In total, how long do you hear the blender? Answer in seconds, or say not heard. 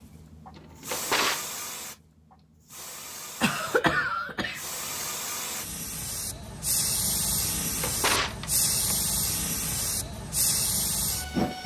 not heard.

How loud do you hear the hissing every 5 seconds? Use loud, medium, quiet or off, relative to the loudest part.
medium, loud, loud.